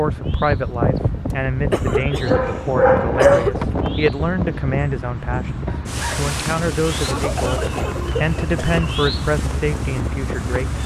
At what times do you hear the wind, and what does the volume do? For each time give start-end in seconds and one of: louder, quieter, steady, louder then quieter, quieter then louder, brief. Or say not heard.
0.0-10.8 quieter.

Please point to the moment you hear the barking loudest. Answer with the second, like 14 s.
3 s.